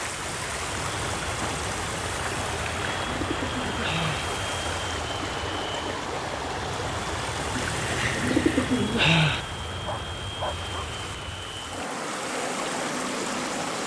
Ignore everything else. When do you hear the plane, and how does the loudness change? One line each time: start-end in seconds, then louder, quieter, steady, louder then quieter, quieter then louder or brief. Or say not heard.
0.0-13.8 steady.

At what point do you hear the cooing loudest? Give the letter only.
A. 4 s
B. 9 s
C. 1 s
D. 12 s
B.